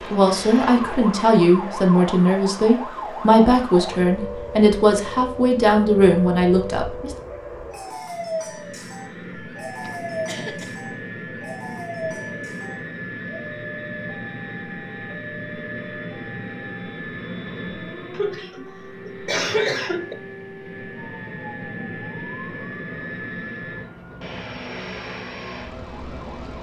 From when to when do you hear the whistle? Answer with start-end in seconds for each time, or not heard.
not heard.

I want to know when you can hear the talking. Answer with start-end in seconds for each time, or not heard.
0.0-7.1.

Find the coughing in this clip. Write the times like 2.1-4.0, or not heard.
0.2-1.0, 9.8-10.8, 18.1-20.1.